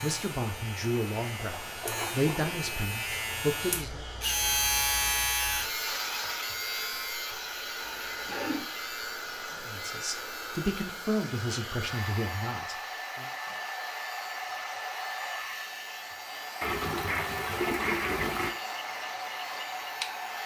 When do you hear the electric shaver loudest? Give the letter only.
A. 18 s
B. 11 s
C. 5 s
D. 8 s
C.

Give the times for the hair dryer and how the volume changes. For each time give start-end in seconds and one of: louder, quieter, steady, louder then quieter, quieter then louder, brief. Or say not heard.
0.0-20.4 louder.